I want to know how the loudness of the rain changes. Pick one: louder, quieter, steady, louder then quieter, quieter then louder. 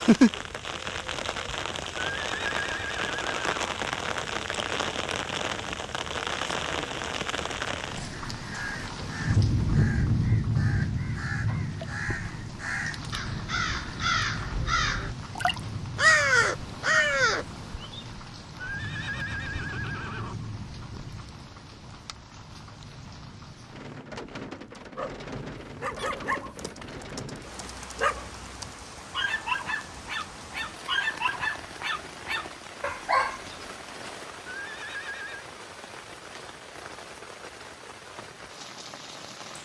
quieter.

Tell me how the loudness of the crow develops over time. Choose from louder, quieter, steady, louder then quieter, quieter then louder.
louder.